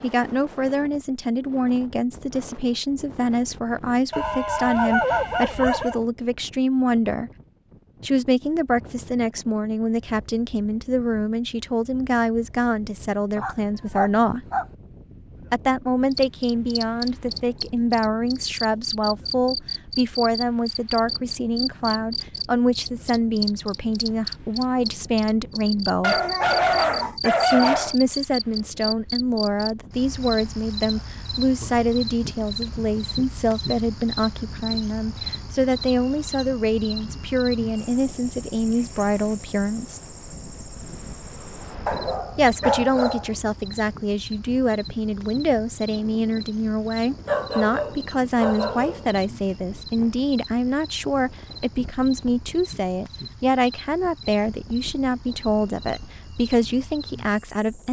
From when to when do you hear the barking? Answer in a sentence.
You can hear the barking from 4.1 to 6.0 s, from 13.3 to 14.7 s, from 26.0 to 27.9 s, from 41.9 to 43.3 s and from 47.2 to 49.0 s.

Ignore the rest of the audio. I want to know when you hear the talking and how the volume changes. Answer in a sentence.
You can hear the talking from 0.0 to 7.3 s, at a steady volume; from 8.0 to 14.4 s, at a steady volume; from 15.5 to 26.2 s, at a steady volume; from 27.2 to 40.0 s, at a steady volume; and from 42.4 to 57.8 s, at a steady volume.